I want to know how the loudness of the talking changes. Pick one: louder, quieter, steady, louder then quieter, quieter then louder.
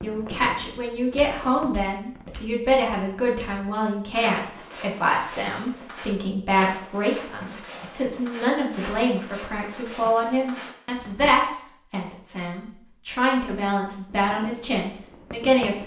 steady.